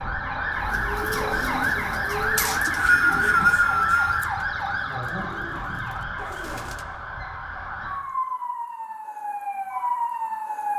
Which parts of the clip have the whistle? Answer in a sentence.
You can hear the whistle from 2.4 to 4.2 s.